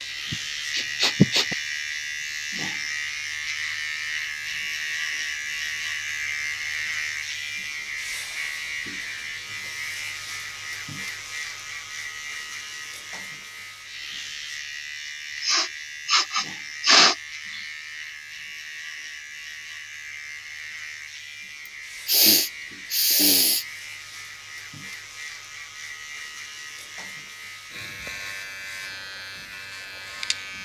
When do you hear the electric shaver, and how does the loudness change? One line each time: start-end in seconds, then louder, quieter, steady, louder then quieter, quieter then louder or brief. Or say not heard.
0.0-30.6 quieter.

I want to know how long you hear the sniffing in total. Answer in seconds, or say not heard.
5 s.